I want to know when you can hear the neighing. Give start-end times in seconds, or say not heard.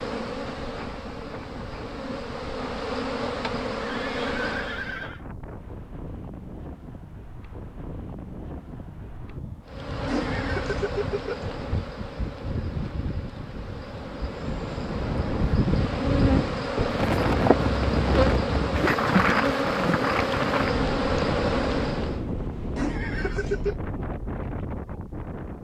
3.8-5.2, 10.1-11.5, 22.8-23.8.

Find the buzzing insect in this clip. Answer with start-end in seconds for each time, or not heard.
0.0-5.0, 9.7-22.2.